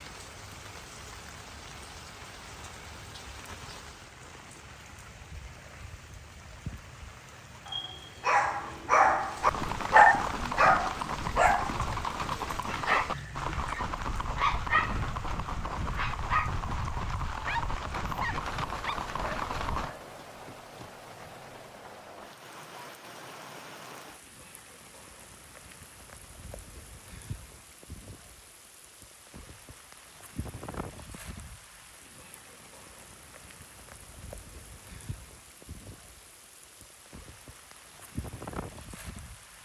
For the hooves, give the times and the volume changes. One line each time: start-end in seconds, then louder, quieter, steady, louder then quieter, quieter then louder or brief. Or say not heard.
9.4-19.9 steady.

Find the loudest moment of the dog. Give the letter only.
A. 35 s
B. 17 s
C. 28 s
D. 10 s
D.